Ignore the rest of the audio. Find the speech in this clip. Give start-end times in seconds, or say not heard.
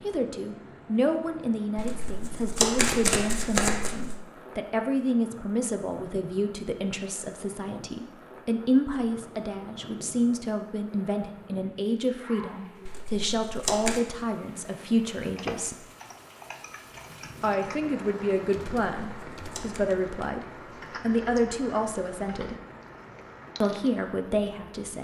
0.0-15.8, 17.4-22.6, 23.6-24.9.